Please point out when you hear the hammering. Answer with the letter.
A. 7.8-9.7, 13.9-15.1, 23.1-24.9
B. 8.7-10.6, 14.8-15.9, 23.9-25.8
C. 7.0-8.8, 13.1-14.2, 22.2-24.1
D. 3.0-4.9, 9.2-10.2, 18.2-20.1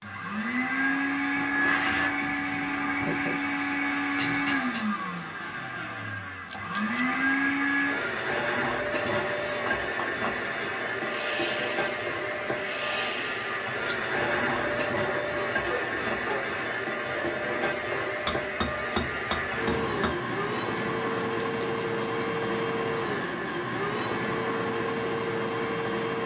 D.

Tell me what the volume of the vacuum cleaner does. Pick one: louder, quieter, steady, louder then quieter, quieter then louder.
steady.